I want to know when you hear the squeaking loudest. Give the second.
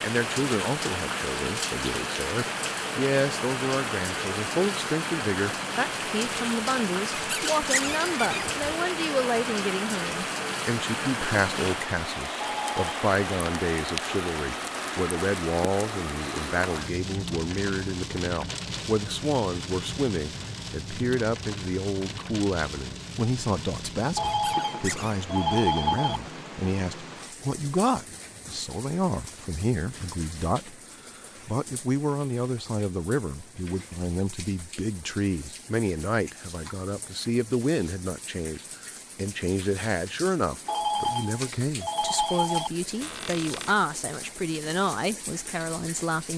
8 s.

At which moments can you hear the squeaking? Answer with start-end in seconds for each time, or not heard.
7.1-8.7, 24.3-25.2, 43.0-43.8.